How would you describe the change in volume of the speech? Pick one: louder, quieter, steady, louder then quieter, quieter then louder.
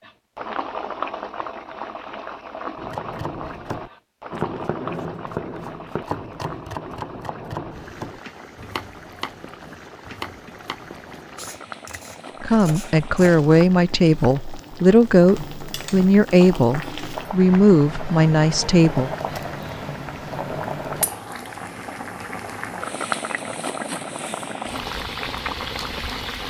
steady.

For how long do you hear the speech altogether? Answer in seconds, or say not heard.
7 s.